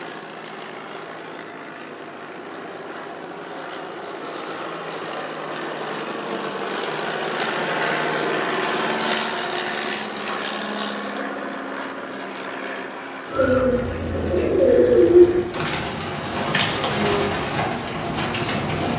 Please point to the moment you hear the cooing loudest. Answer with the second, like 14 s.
15 s.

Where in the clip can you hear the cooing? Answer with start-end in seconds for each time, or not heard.
13.3-18.9.